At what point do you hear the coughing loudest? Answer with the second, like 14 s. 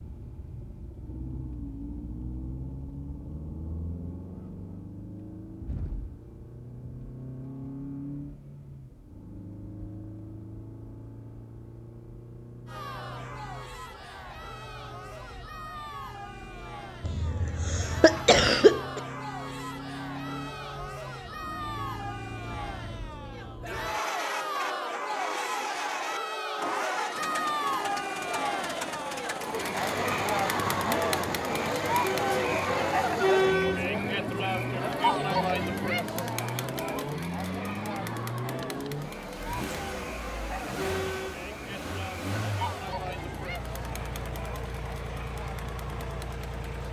19 s.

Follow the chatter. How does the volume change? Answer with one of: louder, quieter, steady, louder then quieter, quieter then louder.
louder then quieter.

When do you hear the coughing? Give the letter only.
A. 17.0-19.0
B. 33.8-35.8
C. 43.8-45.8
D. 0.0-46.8
A.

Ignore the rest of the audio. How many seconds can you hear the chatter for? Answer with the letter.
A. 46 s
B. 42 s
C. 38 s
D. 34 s
D.